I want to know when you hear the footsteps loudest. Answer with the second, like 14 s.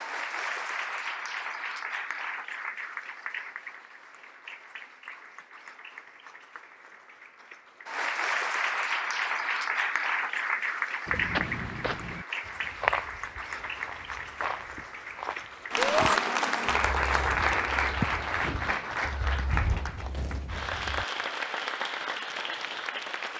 13 s.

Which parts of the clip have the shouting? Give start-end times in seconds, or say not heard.
15.8-16.2.